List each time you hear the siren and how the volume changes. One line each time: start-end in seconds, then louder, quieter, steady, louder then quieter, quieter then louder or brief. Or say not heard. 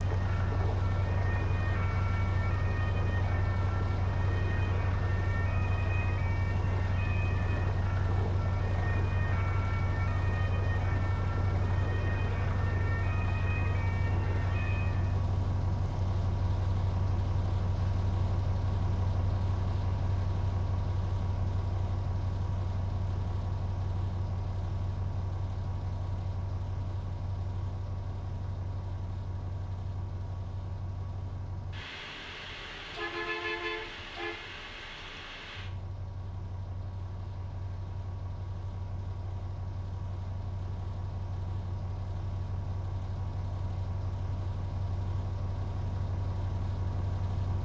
0.0-15.2 steady.